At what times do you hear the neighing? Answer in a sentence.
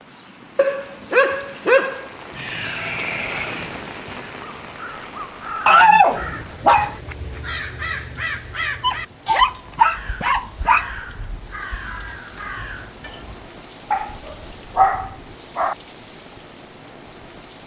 The neighing can be heard from 2.3 to 3.8 s.